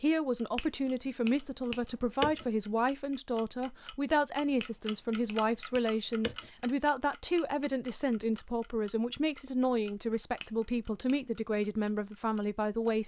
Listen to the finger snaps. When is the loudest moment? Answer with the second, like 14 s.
2 s.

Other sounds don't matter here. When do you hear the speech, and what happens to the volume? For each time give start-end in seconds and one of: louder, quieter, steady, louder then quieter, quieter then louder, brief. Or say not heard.
0.0-13.0 steady.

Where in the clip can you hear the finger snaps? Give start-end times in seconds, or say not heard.
0.6-2.5, 4.6-6.5, 10.4-11.2.